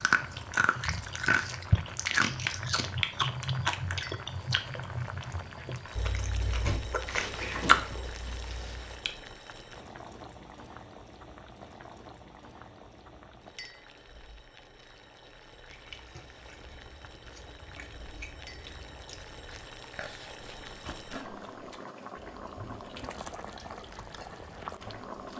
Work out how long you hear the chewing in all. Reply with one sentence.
You can hear the chewing for 19 seconds altogether.